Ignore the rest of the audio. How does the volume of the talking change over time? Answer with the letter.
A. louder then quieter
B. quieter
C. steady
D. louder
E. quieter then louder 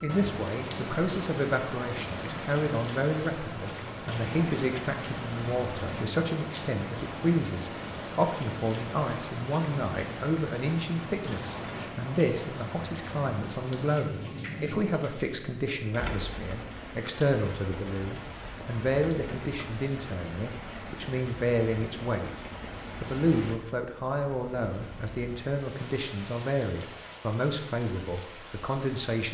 C.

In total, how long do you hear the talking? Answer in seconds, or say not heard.
29 s.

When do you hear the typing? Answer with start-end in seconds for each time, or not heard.
not heard.